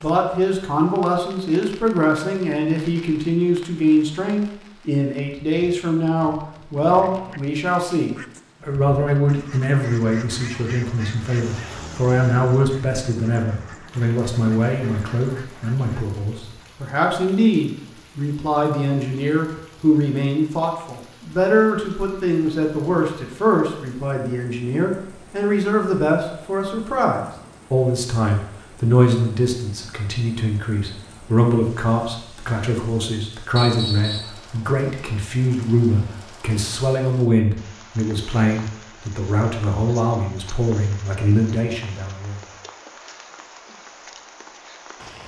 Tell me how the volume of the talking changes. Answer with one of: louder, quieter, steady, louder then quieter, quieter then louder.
steady.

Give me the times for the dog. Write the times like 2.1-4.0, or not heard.
not heard.